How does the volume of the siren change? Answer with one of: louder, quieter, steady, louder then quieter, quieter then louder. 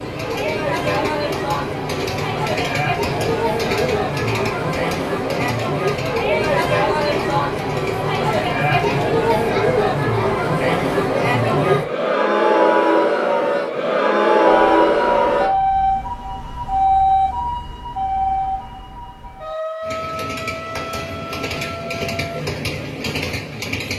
quieter.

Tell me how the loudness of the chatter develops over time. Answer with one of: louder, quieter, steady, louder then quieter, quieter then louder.
louder.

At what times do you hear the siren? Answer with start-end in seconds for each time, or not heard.
14.4-22.4.